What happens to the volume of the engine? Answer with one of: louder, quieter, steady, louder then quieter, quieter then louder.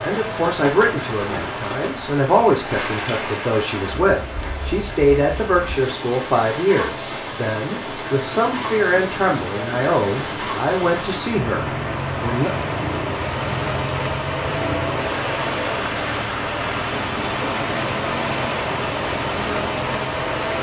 louder.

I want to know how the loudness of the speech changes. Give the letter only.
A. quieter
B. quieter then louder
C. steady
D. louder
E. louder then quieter
C.